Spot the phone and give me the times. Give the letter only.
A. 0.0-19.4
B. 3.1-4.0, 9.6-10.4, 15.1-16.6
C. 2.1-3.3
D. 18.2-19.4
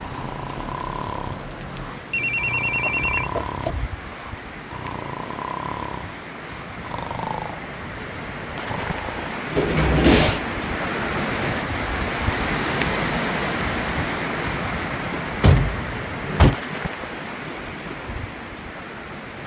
C.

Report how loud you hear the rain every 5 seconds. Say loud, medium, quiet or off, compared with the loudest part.
medium, medium, loud, medium.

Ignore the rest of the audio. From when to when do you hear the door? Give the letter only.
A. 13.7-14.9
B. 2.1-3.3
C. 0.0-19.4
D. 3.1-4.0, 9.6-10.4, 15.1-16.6
D.